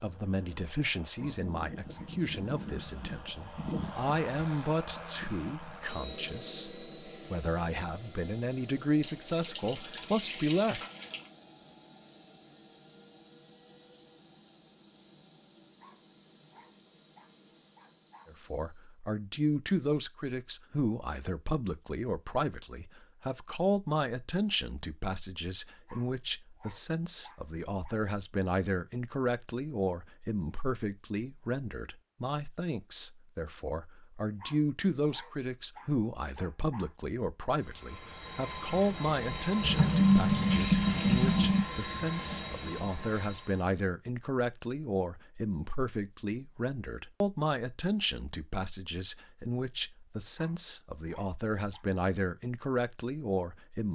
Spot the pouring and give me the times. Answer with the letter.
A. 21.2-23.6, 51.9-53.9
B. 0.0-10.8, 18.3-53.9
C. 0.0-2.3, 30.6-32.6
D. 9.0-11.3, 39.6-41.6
D.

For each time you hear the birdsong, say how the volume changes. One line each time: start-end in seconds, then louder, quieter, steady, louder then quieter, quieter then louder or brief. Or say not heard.
not heard.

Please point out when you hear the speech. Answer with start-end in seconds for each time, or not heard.
0.0-10.8, 18.3-53.9.